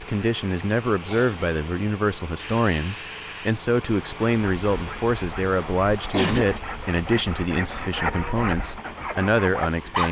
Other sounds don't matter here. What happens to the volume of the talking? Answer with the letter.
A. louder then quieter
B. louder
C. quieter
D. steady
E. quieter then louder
D.